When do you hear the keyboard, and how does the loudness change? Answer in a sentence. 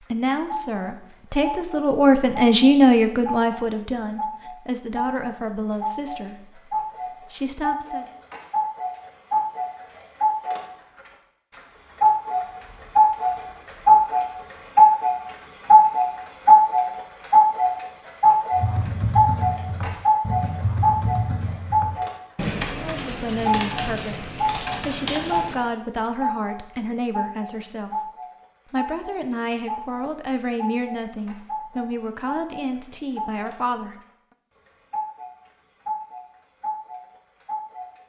You can hear the keyboard from 18.5 to 25.6 s, at a steady volume.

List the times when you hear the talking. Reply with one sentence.
The talking can be heard from 0.0 to 8.1 s, from 22.9 to 28.1 s and from 28.7 to 34.0 s.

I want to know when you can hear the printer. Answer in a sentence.
The printer can't be heard in this clip.